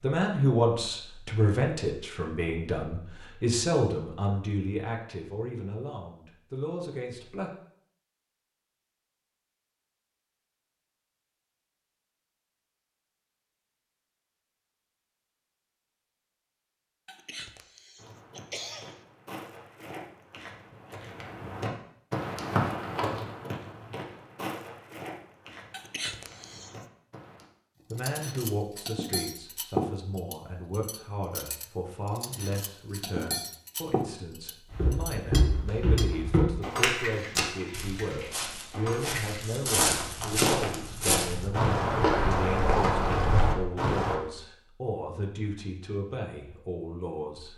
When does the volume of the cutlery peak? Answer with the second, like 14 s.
30 s.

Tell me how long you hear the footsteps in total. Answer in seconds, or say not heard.
19 s.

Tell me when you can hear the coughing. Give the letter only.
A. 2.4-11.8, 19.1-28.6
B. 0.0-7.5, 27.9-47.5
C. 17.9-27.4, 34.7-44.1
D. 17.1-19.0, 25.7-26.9
D.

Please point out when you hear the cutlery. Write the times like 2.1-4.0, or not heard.
27.9-39.5.